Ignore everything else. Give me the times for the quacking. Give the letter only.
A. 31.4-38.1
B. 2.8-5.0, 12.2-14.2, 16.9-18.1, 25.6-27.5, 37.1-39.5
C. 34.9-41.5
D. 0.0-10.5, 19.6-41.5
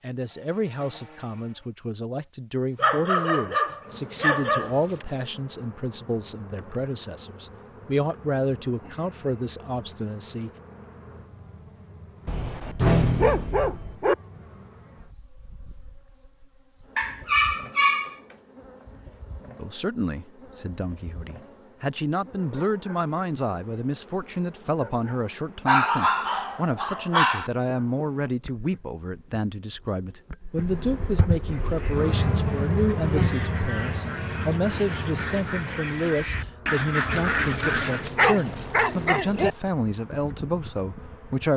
A.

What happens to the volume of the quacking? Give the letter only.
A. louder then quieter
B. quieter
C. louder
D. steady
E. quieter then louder
C.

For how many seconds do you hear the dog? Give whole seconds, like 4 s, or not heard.
10 s.